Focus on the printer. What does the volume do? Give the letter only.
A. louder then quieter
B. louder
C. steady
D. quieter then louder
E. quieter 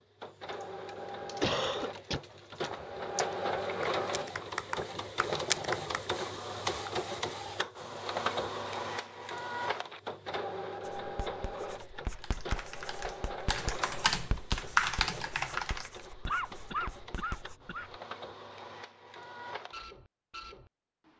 E.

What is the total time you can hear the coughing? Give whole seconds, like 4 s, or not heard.
3 s.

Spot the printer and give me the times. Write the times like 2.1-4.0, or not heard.
0.0-21.1.